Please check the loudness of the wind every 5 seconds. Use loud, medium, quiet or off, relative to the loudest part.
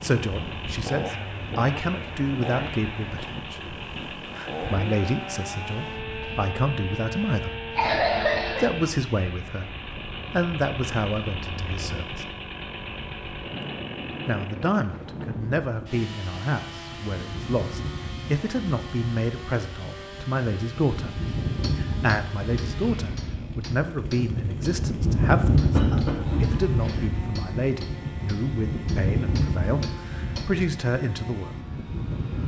quiet, quiet, quiet, quiet, medium, loud, medium.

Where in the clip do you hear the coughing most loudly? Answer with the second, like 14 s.
8 s.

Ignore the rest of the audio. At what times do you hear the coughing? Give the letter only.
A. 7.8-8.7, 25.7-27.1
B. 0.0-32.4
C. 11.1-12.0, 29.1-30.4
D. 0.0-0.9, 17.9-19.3
A.